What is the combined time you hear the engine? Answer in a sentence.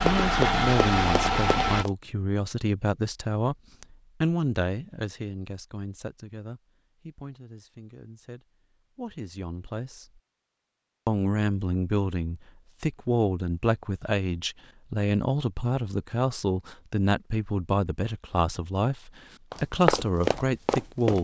The engine can be heard for 2 seconds in total.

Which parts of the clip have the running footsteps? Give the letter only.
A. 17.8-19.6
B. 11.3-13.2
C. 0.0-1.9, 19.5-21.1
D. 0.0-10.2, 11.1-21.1
C.